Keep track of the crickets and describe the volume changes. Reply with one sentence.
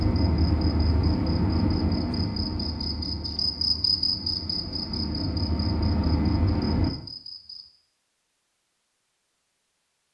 The volume of the crickets goes up, then down.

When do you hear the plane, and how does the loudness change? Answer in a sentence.
The plane can be heard from 0.0 to 6.9 s, getting quieter then louder.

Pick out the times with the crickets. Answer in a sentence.
The crickets can be heard from 0.0 to 7.7 s.